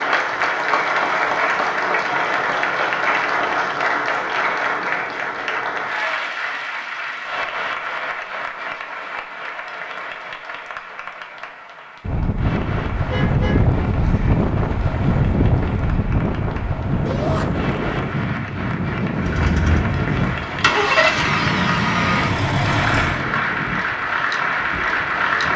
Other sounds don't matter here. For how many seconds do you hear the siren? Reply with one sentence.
The siren can't be heard in this clip.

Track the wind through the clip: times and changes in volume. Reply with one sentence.
The wind can be heard from 12.0 to 25.5 s, getting quieter.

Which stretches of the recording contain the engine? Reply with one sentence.
You can hear the engine from 19.1 to 23.2 s.